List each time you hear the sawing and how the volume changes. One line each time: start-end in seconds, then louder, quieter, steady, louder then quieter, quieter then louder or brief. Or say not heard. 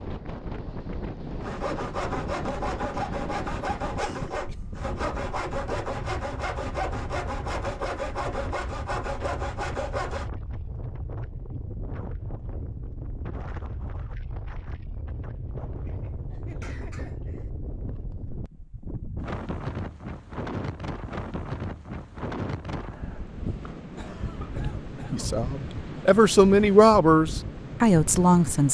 1.4-10.3 steady.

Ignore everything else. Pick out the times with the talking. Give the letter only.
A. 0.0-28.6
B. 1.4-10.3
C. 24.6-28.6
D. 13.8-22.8
C.